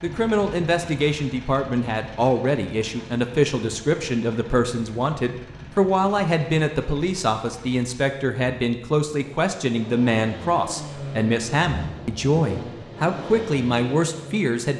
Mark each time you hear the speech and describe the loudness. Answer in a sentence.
You can hear the speech from 0.0 to 14.7 s, at a steady volume.